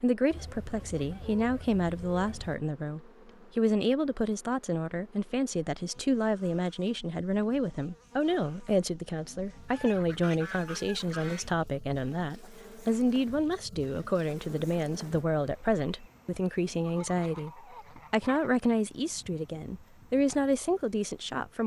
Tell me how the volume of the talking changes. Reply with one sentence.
The volume of the talking stays about the same.